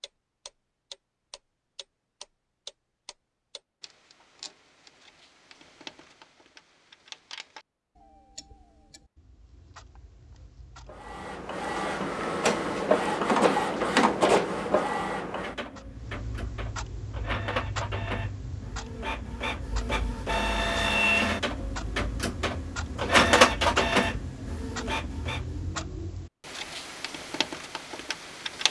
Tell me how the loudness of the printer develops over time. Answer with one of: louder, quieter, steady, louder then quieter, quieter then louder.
quieter then louder.